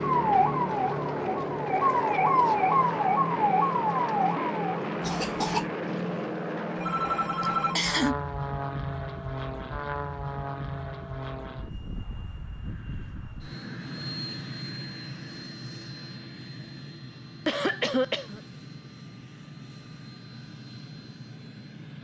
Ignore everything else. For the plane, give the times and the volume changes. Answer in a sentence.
You can hear the plane from 0.0 to 21.9 s, getting quieter.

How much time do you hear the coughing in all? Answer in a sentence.
You can hear the coughing for 2 seconds altogether.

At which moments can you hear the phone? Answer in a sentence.
You can hear the phone from 6.8 to 7.9 s.